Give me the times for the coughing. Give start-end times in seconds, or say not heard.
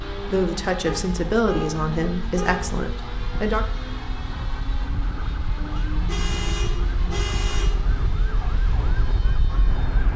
not heard.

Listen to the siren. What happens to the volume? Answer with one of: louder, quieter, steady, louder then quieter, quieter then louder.
louder.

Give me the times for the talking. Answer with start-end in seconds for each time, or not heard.
0.2-3.6.